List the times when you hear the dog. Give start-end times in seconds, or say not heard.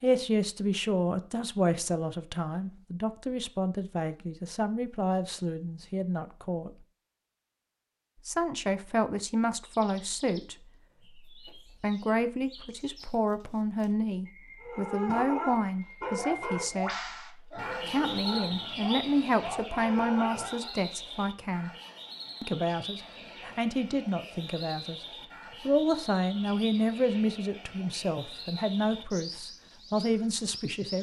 14.6-20.8.